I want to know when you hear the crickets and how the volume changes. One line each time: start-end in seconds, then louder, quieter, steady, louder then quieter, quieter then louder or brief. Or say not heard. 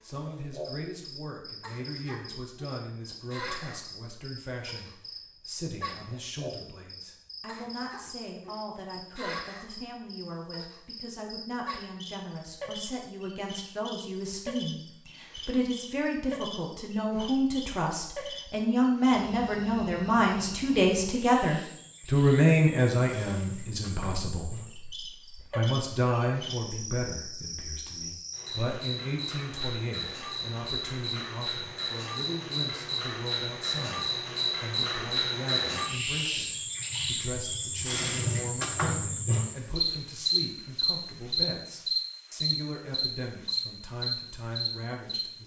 0.0-45.2 louder.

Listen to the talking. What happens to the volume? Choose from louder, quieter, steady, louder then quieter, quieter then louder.
louder then quieter.